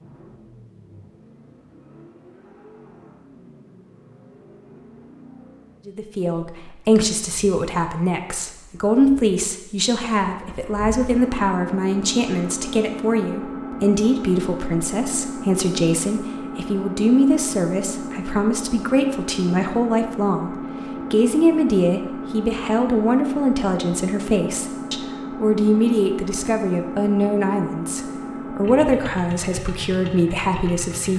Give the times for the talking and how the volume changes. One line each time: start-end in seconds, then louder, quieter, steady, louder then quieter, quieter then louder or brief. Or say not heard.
5.8-31.1 steady.